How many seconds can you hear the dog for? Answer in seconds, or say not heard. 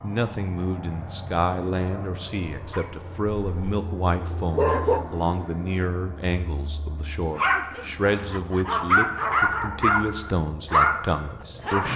6 s.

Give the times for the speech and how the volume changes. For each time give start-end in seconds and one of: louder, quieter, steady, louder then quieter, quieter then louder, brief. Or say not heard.
0.0-11.9 steady.